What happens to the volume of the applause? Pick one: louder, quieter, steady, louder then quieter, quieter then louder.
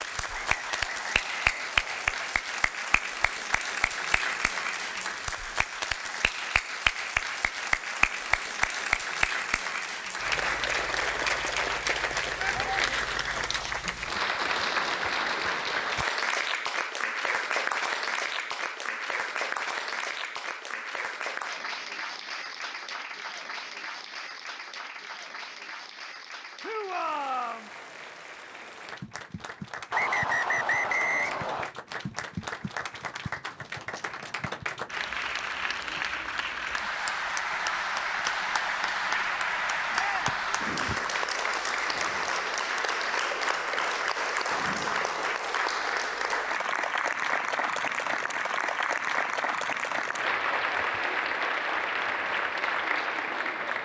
quieter then louder.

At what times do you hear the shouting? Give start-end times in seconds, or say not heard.
12.4-13.0, 26.6-27.7, 39.9-40.5.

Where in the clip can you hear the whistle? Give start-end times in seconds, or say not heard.
0.3-2.3, 29.9-31.7, 40.2-41.0.